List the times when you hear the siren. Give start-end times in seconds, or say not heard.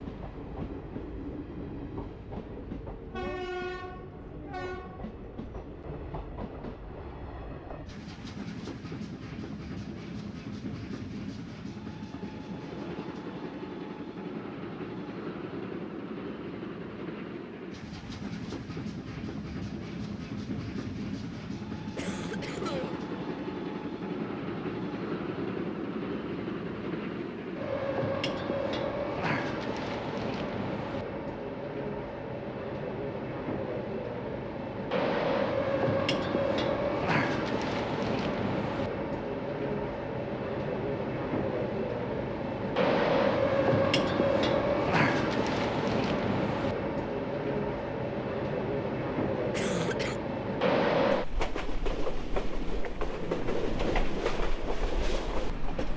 not heard.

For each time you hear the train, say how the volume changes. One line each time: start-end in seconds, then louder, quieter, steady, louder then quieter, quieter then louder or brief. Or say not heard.
0.0-55.9 louder.